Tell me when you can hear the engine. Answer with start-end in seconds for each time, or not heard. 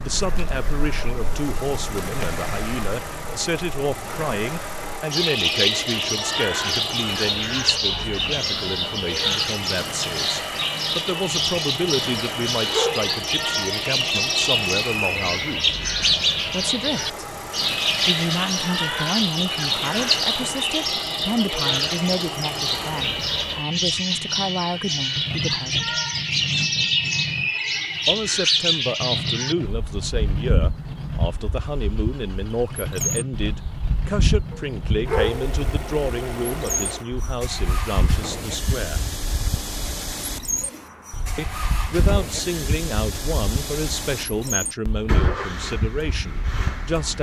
0.0-47.1.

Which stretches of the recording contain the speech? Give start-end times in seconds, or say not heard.
0.0-15.8, 16.5-17.2, 18.1-25.9, 28.1-39.1, 41.4-47.1.